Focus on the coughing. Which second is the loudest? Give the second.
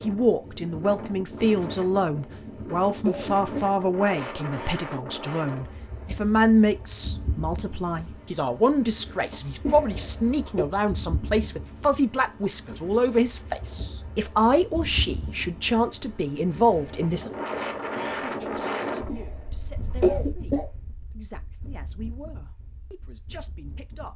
20 s.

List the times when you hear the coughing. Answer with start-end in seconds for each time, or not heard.
2.1-3.7, 9.6-10.7, 19.1-20.6.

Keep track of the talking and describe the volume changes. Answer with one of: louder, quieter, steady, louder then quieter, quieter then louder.
quieter.